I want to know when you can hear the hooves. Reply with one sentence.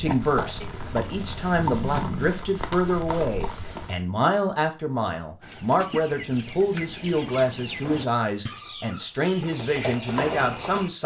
You can hear the hooves from 0.0 to 4.0 s and from 9.3 to 10.9 s.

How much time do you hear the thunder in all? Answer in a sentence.
The thunder can be heard for 2 seconds in total.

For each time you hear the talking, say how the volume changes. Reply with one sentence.
The talking can be heard from 0.0 to 11.0 s, at a steady volume.